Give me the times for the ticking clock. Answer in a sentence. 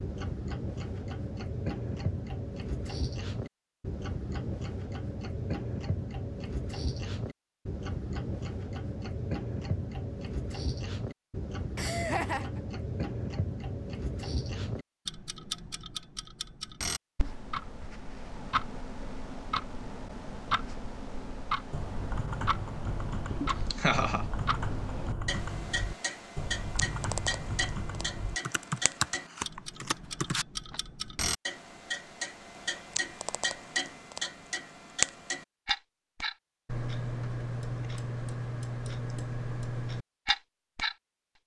The ticking clock can be heard from 0.0 to 41.0 s.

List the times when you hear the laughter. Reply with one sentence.
You can hear the laughter from 11.8 to 12.6 s and from 23.7 to 24.2 s.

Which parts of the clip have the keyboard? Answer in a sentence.
You can hear the keyboard from 21.7 to 30.8 s.